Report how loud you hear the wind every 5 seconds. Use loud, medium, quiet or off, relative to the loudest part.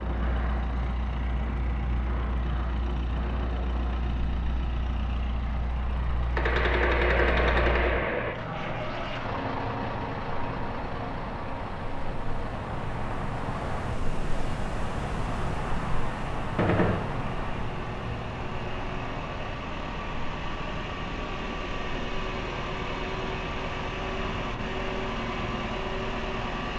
medium, medium, loud, loud, medium, medium.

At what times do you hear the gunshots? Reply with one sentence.
You can hear the gunshots from 6.3 to 8.3 s and from 16.6 to 17.0 s.